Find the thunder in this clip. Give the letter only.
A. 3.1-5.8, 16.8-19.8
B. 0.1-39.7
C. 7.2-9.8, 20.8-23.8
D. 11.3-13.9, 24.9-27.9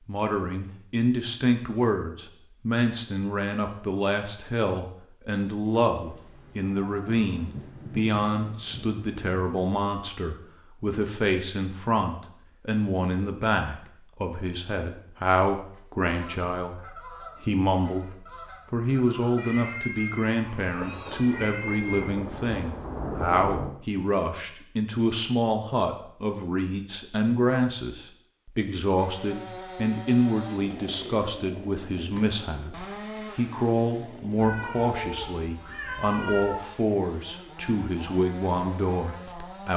C.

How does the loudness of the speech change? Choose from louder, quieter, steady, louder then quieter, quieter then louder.
steady.